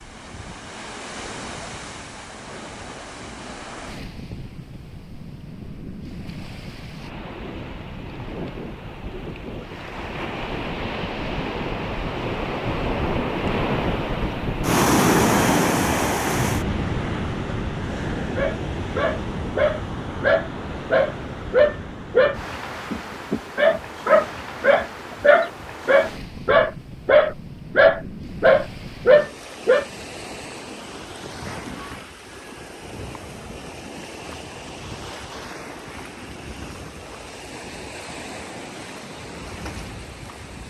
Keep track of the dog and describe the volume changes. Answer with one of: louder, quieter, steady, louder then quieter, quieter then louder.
louder.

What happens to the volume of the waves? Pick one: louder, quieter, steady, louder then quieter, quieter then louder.
louder then quieter.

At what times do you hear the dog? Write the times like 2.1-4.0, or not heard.
18.4-29.9.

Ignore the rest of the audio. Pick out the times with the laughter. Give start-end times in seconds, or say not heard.
not heard.